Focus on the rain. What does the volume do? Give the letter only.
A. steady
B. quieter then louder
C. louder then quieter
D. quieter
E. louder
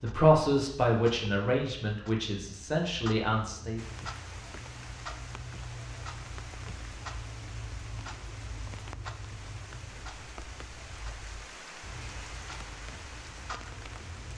A.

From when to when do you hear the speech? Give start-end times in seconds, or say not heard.
0.0-3.8.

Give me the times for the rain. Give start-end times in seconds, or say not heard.
3.8-14.3.